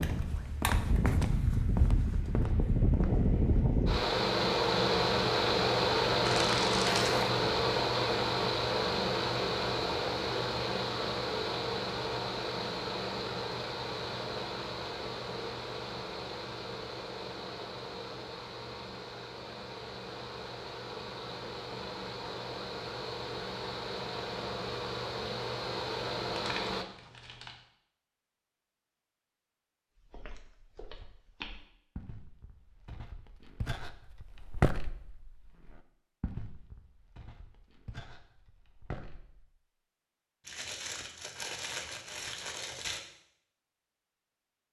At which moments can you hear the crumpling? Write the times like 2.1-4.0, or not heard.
6.2-7.2, 26.3-27.6, 40.5-43.0.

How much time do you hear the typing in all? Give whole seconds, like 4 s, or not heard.
not heard.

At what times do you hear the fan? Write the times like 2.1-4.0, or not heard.
0.0-26.9.